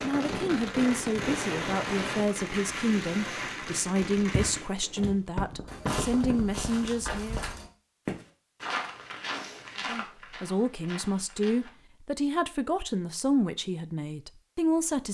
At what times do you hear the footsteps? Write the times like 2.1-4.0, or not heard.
4.2-11.7.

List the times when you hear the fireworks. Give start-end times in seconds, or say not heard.
0.0-6.9.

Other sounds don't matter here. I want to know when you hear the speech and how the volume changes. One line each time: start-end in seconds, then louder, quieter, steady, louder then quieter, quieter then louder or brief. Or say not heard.
0.0-7.5 steady
9.8-15.1 steady.